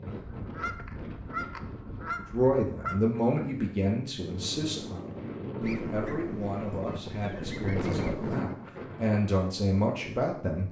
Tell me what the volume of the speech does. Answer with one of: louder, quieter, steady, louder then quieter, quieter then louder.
quieter then louder.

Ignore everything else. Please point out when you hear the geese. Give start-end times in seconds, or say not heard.
0.1-3.0, 5.6-8.5.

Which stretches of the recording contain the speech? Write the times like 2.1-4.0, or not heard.
2.3-10.6.